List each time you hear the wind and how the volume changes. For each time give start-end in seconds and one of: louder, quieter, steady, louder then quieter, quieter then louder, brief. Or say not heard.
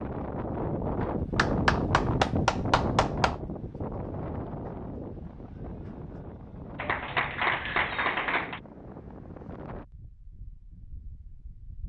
0.0-11.8 quieter.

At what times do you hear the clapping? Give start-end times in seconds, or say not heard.
1.4-3.4, 6.8-8.6.